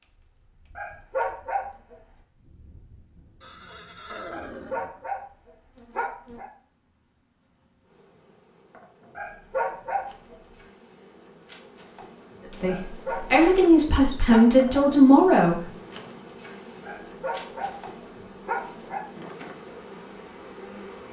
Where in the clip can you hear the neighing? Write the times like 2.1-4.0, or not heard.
3.4-5.0.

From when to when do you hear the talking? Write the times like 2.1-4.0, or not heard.
12.6-15.7.